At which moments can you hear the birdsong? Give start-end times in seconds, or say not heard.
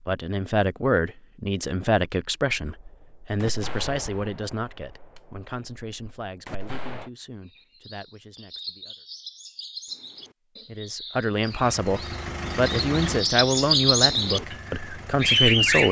7.5-15.8.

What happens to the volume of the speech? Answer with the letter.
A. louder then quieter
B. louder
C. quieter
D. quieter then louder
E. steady
D.